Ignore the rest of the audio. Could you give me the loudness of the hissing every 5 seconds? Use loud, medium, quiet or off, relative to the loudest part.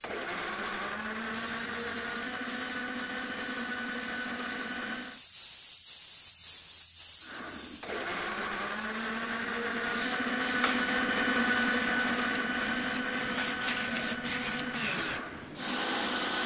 medium, medium, loud, loud.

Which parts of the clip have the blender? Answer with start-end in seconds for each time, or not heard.
0.0-5.2, 7.2-16.4.